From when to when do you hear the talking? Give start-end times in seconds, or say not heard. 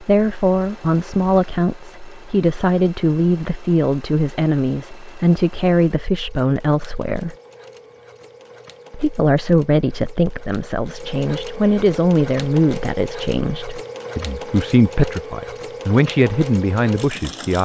0.0-7.3, 8.9-17.6.